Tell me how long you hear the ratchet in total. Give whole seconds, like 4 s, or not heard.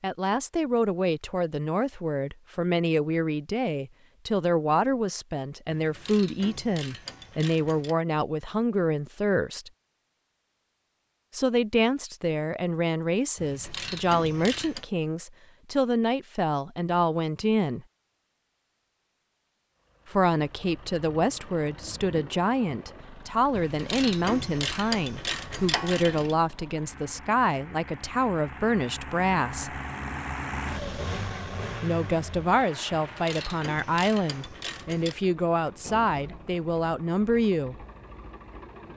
9 s.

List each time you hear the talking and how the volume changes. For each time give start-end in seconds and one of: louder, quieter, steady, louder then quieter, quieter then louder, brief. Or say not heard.
0.0-9.7 steady
11.3-17.9 steady
20.1-29.8 steady
31.8-37.8 steady.